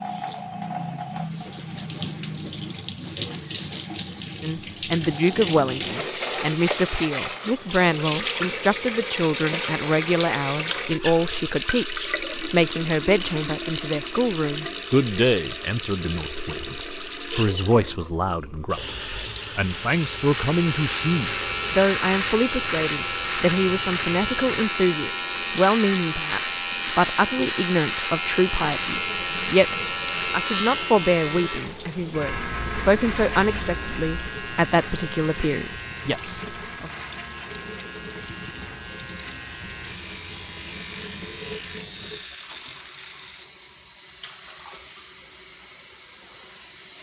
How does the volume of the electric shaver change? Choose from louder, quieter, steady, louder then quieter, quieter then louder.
quieter.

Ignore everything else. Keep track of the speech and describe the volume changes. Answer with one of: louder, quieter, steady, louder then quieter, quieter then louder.
steady.